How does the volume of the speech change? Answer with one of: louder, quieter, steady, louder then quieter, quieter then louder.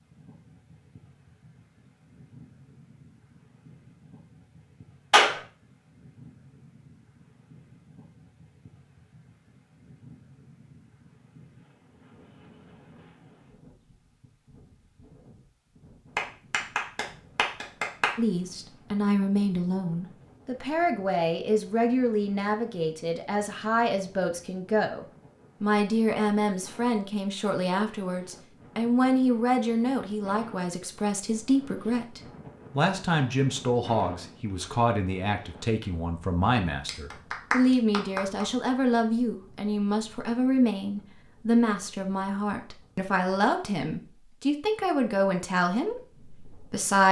steady.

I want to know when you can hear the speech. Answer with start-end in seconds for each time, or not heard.
18.1-47.0.